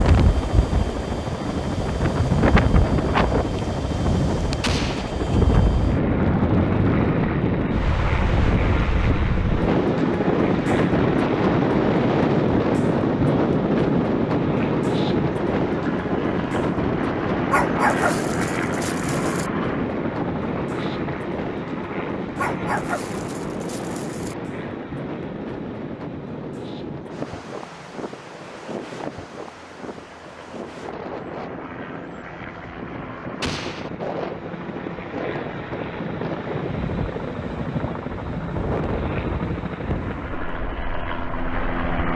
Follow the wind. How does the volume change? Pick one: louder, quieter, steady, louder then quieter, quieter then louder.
quieter.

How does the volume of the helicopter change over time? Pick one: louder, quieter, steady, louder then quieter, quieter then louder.
quieter then louder.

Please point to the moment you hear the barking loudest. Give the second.
18 s.